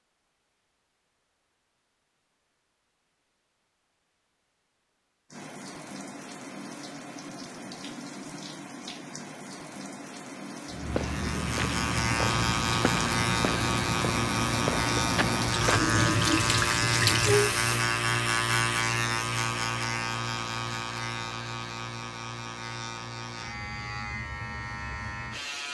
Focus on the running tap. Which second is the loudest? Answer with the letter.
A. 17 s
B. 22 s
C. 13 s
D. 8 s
A.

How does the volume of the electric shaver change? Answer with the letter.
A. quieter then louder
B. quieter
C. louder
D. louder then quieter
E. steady
B.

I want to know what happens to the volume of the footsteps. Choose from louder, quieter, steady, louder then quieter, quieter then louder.
steady.